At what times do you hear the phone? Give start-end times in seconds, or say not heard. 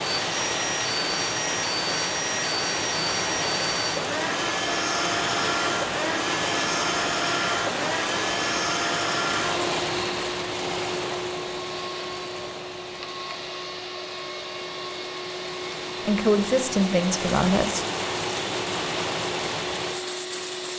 not heard.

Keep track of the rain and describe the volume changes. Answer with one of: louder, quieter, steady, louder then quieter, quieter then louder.
quieter then louder.